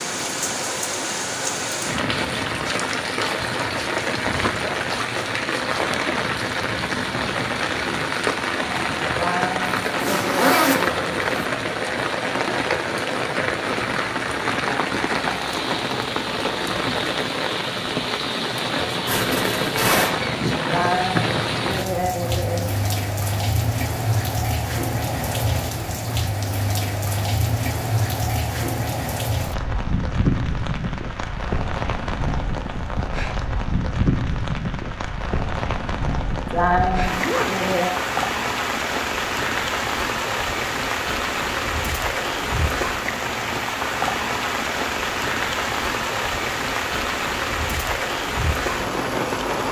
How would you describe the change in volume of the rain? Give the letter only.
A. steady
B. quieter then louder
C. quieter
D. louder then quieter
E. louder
A.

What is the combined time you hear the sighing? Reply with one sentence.
The sighing can be heard for 6 seconds in total.